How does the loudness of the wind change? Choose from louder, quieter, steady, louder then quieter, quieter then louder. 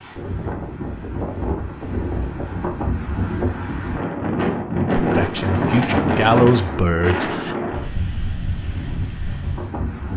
louder then quieter.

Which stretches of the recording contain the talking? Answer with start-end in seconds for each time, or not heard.
5.0-7.5.